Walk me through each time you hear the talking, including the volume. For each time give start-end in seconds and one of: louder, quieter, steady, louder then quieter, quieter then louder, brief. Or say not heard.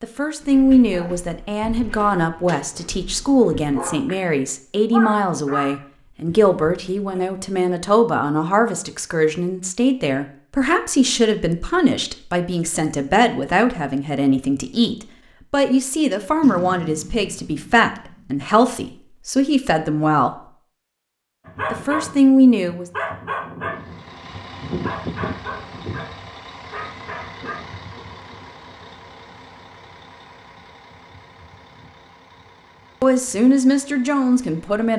0.0-20.4 steady
21.7-22.9 brief
33.0-34.9 brief.